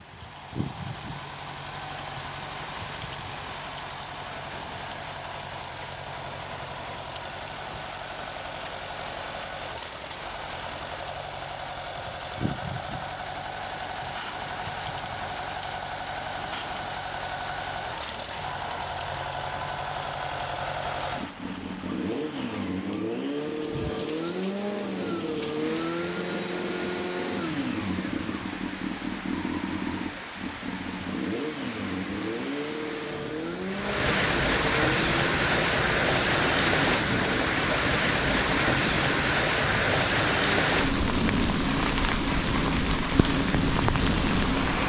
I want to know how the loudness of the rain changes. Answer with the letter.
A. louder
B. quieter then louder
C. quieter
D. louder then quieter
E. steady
A.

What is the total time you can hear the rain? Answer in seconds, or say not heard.
45 s.